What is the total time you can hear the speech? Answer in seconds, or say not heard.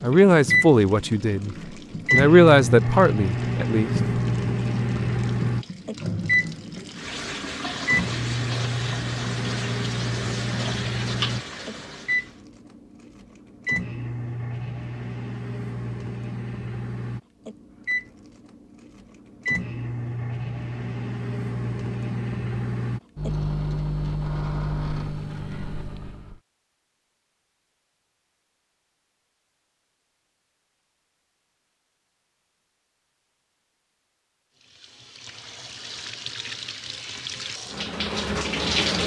4 s.